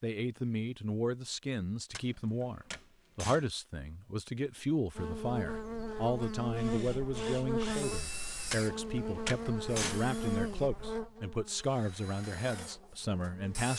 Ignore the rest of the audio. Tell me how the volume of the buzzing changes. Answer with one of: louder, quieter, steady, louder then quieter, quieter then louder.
quieter.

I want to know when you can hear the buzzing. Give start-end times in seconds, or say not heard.
5.0-13.7.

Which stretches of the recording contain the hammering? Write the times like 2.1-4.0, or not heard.
1.9-3.5, 8.5-10.1.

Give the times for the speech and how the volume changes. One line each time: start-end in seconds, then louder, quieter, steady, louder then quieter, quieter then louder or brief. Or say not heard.
0.0-13.7 steady.